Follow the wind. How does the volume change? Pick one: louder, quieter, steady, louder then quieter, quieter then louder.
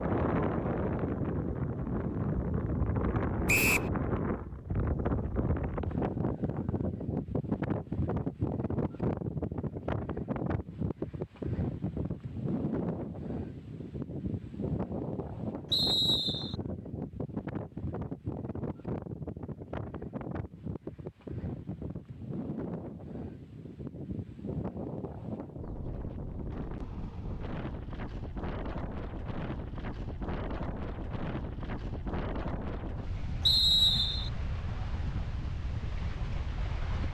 quieter.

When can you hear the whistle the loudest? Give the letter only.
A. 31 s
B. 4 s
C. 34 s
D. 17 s
C.